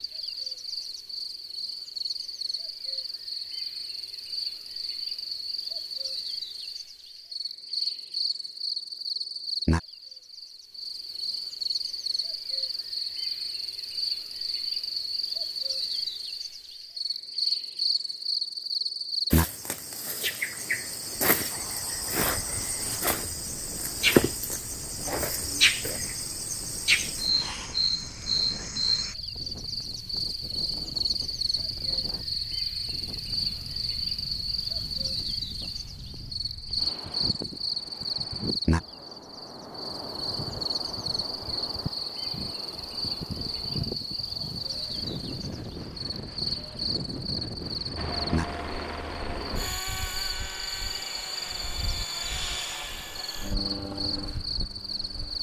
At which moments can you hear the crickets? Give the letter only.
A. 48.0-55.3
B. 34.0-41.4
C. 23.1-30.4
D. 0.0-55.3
D.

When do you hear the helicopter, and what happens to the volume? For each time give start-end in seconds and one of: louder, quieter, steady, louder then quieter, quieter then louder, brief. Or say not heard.
48.0-55.3 steady.